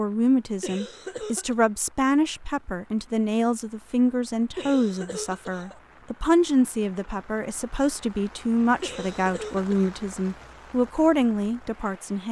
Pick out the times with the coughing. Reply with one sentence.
The coughing can be heard from 0.6 to 1.6 s, from 4.5 to 5.8 s and from 8.8 to 9.9 s.